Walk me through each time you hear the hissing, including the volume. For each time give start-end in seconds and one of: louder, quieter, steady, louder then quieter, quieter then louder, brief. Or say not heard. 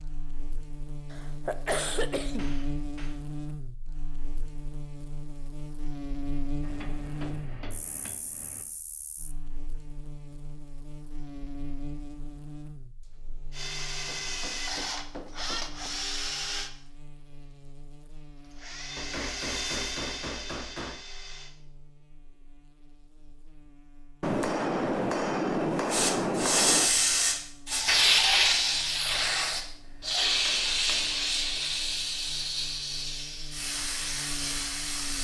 25.9-35.1 quieter.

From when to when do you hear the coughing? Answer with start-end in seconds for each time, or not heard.
1.1-2.6.